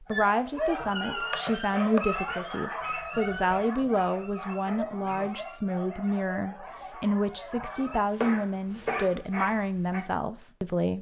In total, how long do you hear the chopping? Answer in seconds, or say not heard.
3 s.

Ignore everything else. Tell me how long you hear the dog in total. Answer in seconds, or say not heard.
10 s.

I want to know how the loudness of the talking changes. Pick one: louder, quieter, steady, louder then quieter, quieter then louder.
steady.